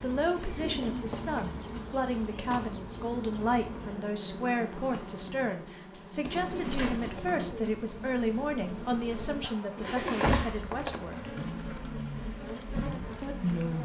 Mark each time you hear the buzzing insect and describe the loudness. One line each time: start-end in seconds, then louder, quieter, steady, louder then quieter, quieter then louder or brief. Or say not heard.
0.0-13.7 steady.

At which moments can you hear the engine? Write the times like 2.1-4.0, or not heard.
9.8-13.7.